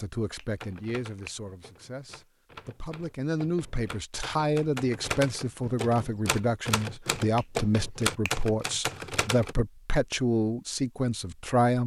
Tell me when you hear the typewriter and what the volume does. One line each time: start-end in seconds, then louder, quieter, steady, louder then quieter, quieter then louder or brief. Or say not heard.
0.6-9.6 louder.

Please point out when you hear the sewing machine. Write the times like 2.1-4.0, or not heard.
not heard.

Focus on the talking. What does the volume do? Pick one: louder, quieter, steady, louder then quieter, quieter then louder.
louder.